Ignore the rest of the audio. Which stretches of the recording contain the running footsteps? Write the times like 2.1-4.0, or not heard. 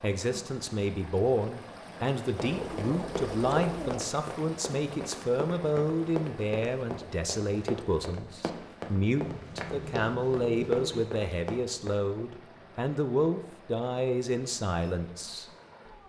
2.2-12.0.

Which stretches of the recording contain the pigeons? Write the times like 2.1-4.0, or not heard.
2.4-4.0, 9.2-11.1.